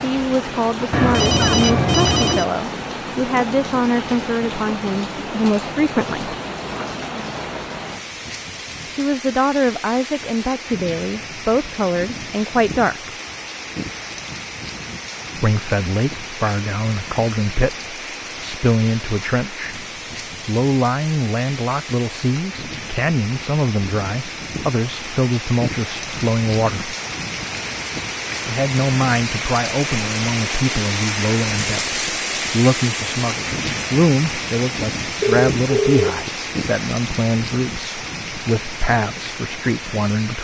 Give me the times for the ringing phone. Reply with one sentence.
You can hear the ringing phone from 0.9 to 2.5 s and from 35.2 to 36.3 s.